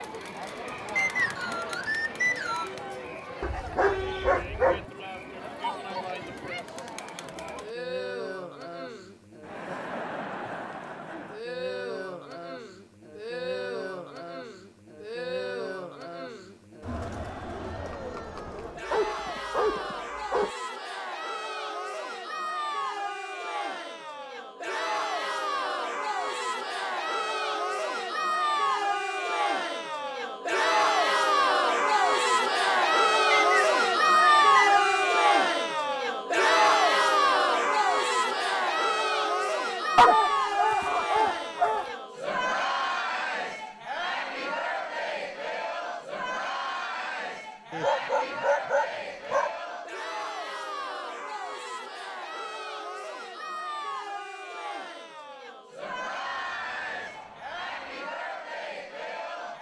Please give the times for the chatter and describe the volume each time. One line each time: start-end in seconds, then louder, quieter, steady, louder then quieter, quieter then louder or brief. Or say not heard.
0.0-59.5 louder then quieter.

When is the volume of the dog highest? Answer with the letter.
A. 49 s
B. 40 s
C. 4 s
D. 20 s
B.